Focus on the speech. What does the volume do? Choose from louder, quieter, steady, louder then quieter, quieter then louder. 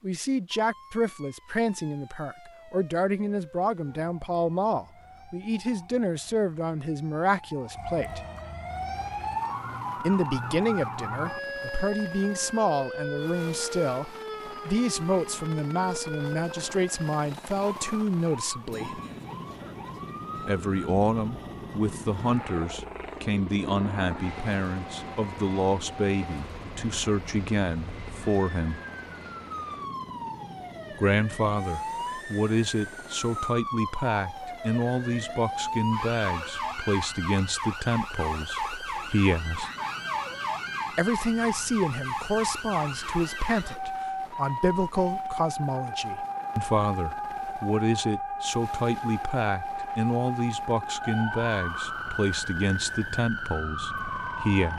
steady.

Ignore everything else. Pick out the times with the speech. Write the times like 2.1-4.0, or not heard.
0.0-8.2, 10.0-19.0, 20.4-28.8, 30.9-39.7, 41.0-54.7.